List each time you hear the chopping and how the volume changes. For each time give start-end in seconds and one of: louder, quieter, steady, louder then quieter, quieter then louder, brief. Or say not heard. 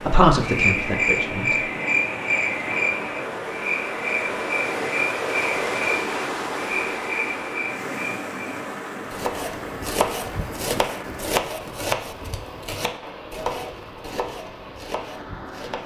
9.1-15.8 quieter.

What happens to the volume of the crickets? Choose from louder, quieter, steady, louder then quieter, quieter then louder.
quieter.